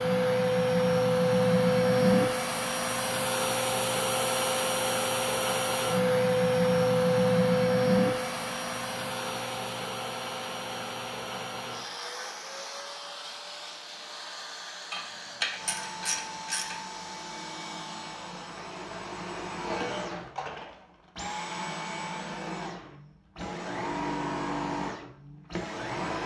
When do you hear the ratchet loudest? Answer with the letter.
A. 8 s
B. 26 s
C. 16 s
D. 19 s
C.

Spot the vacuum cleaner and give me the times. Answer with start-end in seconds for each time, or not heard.
0.0-26.2.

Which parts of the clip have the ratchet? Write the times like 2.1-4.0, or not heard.
14.9-16.8.